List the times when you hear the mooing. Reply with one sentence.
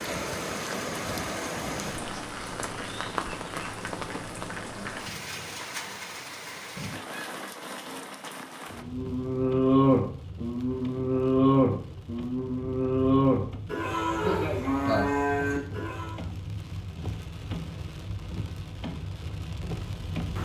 The mooing can be heard from 8.7 to 16.2 s.